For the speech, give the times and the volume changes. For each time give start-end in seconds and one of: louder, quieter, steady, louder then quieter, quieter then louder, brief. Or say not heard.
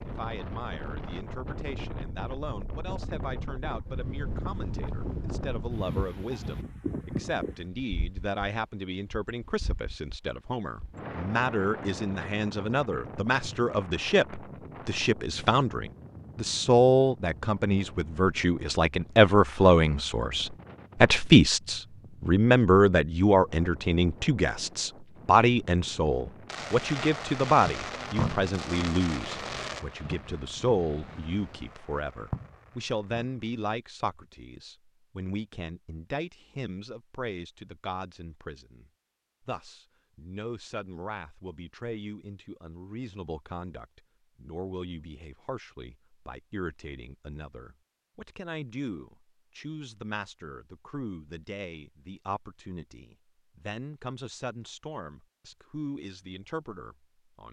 0.0-57.4 louder then quieter.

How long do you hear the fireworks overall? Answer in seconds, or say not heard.
7 s.